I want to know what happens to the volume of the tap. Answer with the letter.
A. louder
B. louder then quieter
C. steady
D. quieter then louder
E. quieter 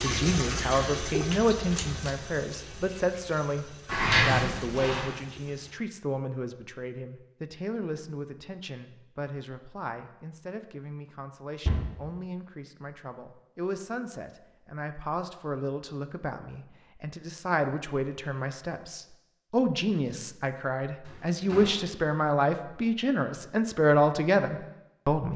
E.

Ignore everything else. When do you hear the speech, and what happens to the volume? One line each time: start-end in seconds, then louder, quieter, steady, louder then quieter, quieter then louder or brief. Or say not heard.
0.0-25.3 quieter then louder.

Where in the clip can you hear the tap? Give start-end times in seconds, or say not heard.
0.0-5.8.